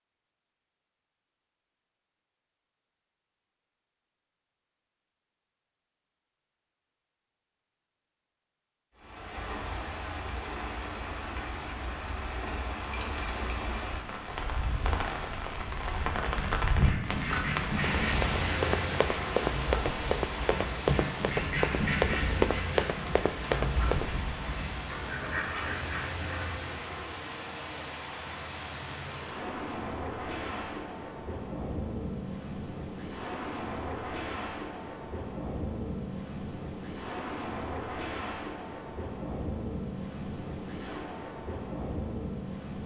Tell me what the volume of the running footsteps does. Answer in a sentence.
The volume of the running footsteps stays about the same.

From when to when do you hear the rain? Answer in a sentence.
You can hear the rain from 8.9 to 42.8 s.